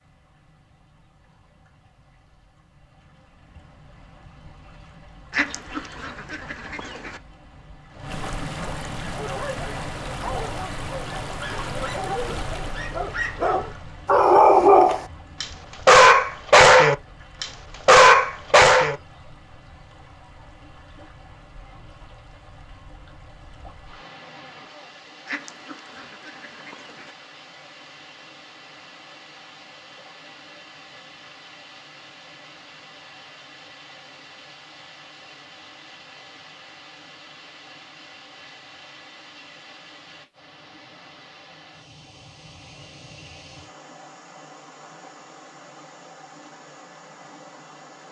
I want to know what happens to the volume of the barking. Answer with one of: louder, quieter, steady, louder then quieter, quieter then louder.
louder.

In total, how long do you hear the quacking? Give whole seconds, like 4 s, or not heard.
4 s.